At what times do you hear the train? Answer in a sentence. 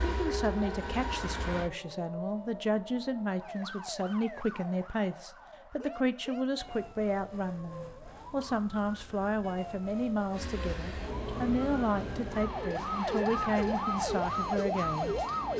You can hear the train from 0.0 to 1.7 s and from 10.3 to 15.5 s.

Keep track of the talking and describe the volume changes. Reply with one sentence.
The loudness of the talking stays about the same.